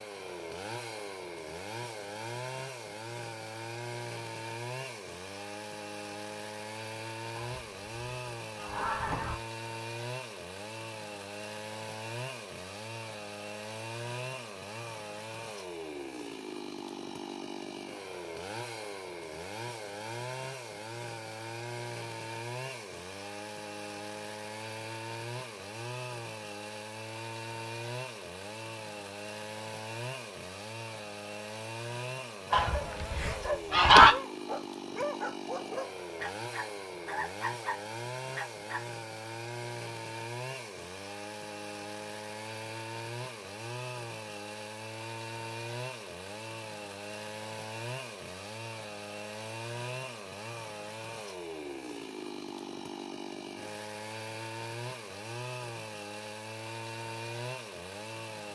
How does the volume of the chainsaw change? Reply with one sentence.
The loudness of the chainsaw stays about the same.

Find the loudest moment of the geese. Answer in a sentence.
The loudest moment of the geese is at 34 seconds.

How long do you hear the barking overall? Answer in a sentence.
You can hear the barking for 6 seconds altogether.